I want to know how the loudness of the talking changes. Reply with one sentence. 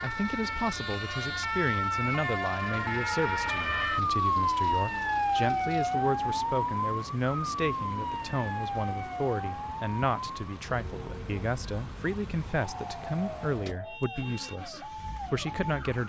The volume of the talking stays about the same.